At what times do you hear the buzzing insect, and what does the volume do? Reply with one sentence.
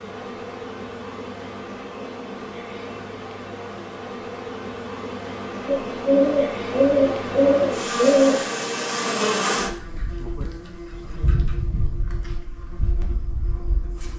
The buzzing insect can be heard from 0.0 to 14.1 s, getting louder then quieter.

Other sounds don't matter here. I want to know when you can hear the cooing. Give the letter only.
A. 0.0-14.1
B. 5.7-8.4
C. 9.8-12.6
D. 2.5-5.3
B.